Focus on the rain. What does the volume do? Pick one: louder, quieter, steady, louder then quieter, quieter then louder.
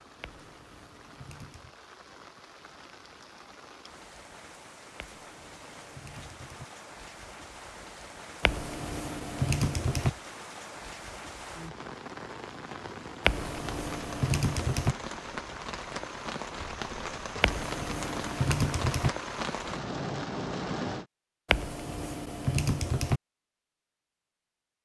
louder.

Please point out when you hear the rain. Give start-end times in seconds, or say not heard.
0.0-21.1.